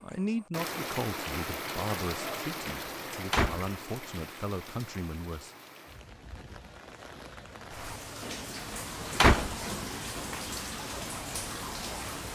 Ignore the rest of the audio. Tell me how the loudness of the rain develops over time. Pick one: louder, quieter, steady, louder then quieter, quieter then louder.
quieter then louder.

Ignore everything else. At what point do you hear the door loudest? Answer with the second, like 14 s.
9 s.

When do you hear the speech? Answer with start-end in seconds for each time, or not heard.
0.0-5.5.